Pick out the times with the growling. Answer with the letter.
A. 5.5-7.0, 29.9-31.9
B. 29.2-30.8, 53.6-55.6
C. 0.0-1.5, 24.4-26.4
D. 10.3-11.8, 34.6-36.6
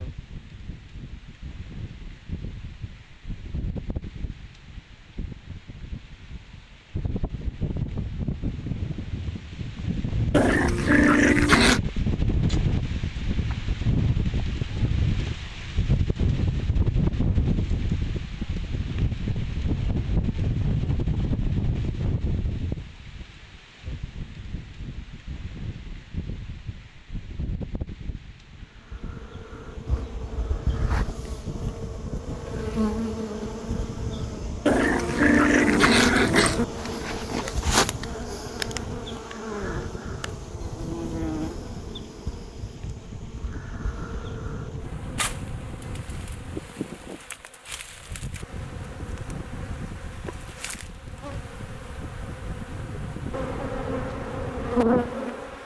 D.